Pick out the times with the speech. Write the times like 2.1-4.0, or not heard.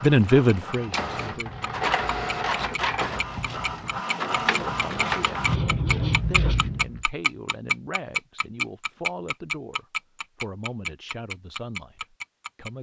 0.0-1.6, 4.5-12.7.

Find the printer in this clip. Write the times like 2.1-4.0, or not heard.
0.0-5.6.